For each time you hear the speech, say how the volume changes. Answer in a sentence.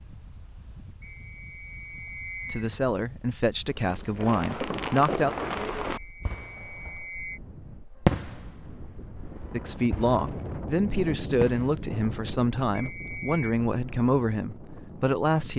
The speech can be heard briefly from 2.5 to 5.3 s; and from 9.5 to 15.5 s, at a steady volume.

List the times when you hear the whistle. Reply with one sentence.
You can hear the whistle from 1.0 to 2.6 s, from 5.9 to 7.4 s and from 12.8 to 13.4 s.